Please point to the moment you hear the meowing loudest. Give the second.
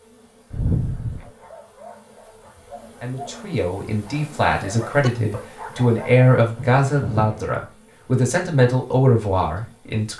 1 s.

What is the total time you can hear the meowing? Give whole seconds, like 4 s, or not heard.
2 s.